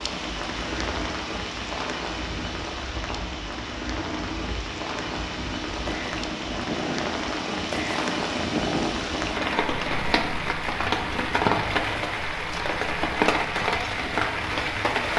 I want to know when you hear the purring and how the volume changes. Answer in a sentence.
The purring can be heard from 0.0 to 14.9 s, getting louder then quieter.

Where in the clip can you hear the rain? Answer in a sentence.
The rain can be heard from 0.0 to 15.1 s.